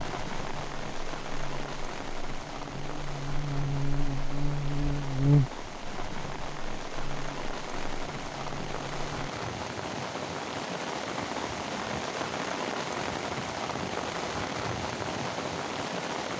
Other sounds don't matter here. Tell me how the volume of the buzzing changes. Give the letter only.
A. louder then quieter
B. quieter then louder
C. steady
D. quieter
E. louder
A.